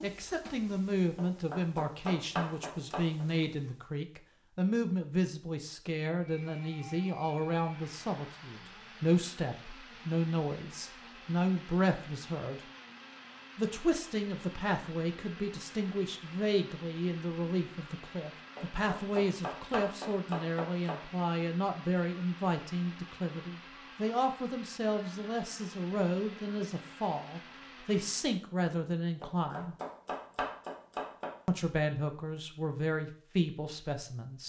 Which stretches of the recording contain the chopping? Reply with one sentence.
The chopping can be heard from 1.1 to 3.2 s, from 18.6 to 21.1 s and from 29.2 to 31.4 s.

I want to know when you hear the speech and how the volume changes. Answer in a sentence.
You can hear the speech from 0.0 to 12.6 s, at a steady volume; from 13.6 to 29.8 s, at a steady volume; and briefly from 31.4 to 34.4 s.